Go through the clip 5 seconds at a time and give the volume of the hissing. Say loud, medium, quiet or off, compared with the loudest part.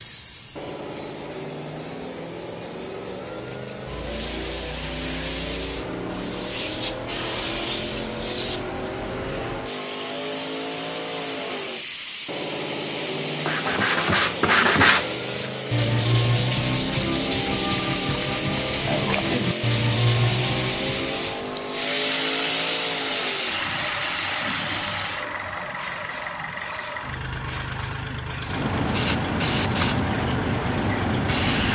quiet, medium, medium, medium, loud, loud, loud.